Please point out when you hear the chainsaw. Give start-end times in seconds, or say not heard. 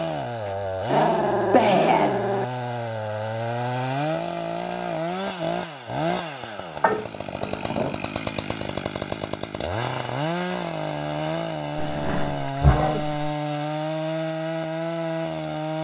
0.0-15.8.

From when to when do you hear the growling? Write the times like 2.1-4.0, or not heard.
0.5-2.5, 6.8-8.0, 11.8-13.3.